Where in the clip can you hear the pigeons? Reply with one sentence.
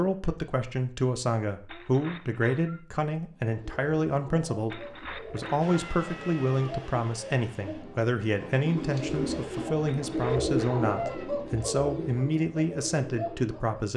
You can hear the pigeons from 3.4 to 13.9 s.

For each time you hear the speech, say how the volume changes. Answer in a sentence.
The speech can be heard from 0.0 to 13.9 s, at a steady volume.